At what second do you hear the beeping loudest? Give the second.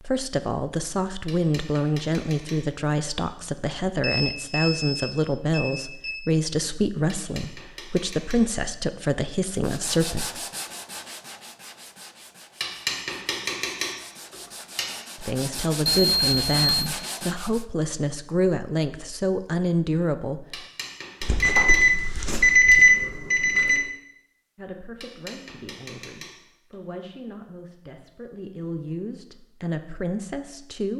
23 s.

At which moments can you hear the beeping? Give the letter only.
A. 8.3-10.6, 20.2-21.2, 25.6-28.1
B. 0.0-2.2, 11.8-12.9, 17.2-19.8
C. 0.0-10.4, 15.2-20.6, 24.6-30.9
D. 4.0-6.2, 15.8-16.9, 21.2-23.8
D.